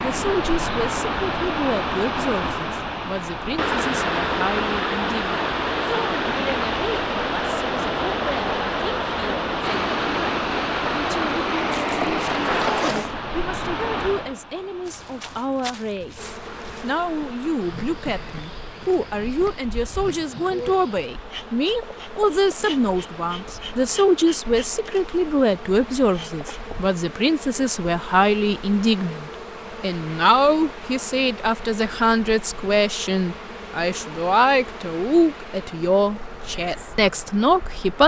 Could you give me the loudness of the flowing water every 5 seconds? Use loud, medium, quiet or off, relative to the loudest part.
loud, loud, loud, quiet, quiet, quiet, quiet, quiet.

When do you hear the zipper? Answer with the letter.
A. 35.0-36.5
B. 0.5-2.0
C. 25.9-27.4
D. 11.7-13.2
D.